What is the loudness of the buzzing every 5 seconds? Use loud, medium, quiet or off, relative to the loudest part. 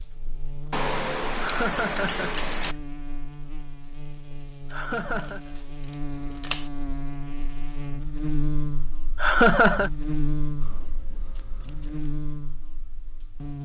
medium, loud, loud.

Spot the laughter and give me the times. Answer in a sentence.
The laughter can be heard from 1.4 to 2.5 s, from 4.7 to 5.4 s and from 9.2 to 9.9 s.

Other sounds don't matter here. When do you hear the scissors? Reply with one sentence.
The scissors can be heard from 0.7 to 2.8 s, from 4.7 to 6.7 s and from 10.6 to 12.1 s.